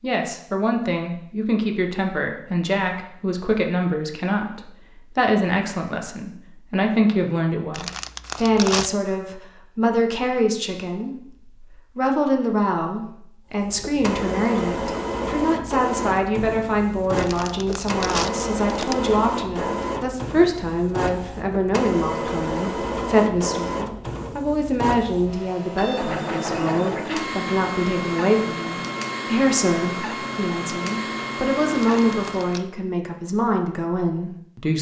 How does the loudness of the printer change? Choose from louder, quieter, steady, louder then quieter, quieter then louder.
steady.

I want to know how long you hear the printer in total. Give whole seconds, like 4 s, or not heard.
19 s.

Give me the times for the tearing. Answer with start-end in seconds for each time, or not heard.
7.7-8.9, 17.1-18.9, 31.9-32.6.